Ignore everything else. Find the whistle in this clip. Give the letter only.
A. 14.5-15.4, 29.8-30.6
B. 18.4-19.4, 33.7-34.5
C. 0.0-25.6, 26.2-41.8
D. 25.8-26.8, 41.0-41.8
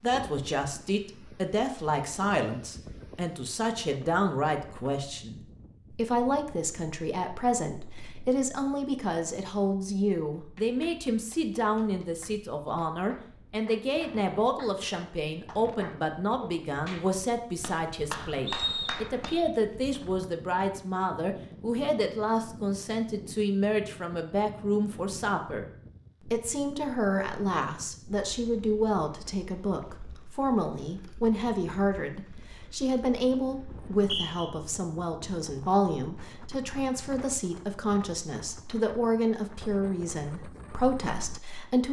B.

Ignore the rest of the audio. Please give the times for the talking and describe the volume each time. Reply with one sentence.
The talking can be heard from 0.0 to 25.6 s, at a steady volume; and from 26.2 to 41.8 s, at a steady volume.